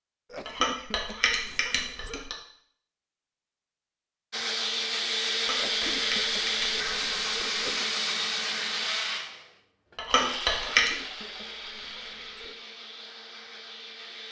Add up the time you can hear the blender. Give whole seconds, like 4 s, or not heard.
10 s.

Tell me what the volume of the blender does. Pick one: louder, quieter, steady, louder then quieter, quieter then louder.
quieter.